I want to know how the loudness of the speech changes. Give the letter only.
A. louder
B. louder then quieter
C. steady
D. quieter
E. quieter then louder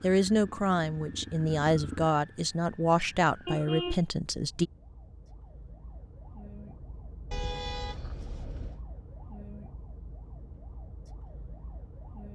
C.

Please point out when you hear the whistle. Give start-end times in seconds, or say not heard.
not heard.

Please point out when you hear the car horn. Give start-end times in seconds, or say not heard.
3.5-4.0, 7.3-8.8.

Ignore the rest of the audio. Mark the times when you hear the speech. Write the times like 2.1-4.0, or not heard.
0.0-4.7.